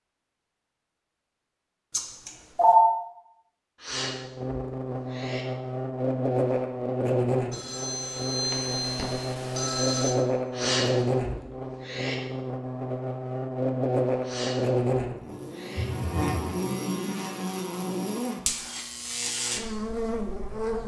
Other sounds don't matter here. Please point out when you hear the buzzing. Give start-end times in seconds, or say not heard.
3.9-20.8.